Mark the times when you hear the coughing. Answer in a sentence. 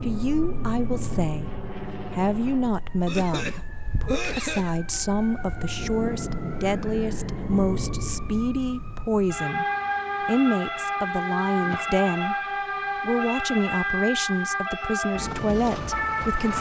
You can hear the coughing from 3.0 to 4.8 s and from 11.5 to 11.9 s.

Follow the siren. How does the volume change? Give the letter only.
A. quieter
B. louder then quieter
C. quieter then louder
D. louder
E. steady
D.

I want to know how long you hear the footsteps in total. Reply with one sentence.
You can't hear the footsteps here.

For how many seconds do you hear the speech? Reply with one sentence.
You can hear the speech for 15 seconds altogether.